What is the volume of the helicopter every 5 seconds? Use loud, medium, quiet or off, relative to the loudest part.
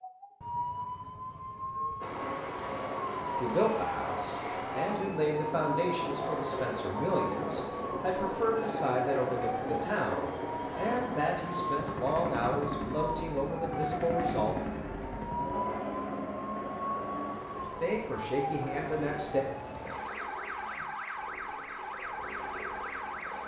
loud, loud, loud, loud, medium.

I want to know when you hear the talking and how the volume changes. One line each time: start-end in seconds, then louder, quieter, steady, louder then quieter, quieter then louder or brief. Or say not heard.
3.4-14.6 steady
17.8-19.4 brief.